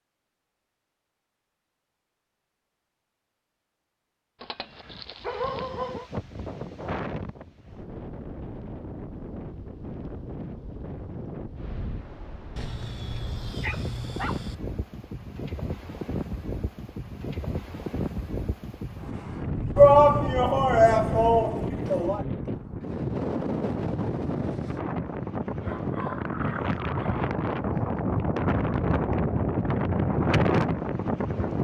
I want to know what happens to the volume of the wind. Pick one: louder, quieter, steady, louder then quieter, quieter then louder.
louder.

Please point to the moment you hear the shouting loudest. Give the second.
20 s.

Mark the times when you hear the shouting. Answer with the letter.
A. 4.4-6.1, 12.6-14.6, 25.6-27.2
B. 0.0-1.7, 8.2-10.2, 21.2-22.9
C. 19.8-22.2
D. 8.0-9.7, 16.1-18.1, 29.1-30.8
C.